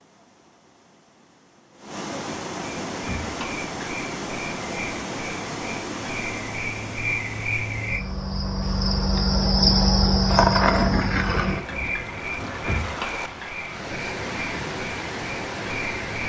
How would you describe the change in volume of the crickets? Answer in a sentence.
The volume of the crickets goes up, then down.